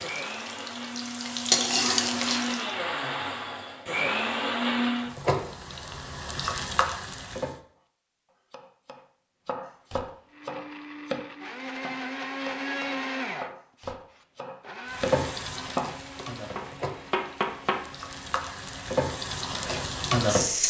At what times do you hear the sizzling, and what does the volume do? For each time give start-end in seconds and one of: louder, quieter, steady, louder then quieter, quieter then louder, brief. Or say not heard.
0.0-2.8 brief
5.0-7.5 brief
14.9-20.6 quieter then louder.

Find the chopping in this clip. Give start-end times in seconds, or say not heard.
7.8-17.9.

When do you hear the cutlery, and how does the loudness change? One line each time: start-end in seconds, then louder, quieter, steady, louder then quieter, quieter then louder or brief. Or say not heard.
not heard.